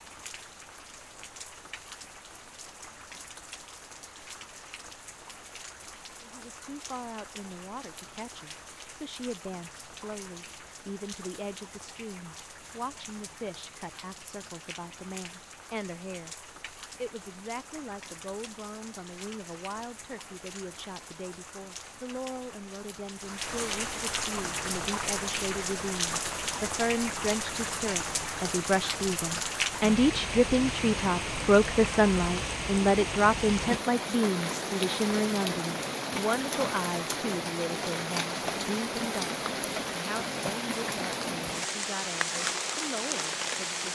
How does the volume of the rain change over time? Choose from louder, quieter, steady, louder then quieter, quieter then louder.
louder.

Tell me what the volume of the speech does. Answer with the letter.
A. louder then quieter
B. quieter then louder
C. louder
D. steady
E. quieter
A.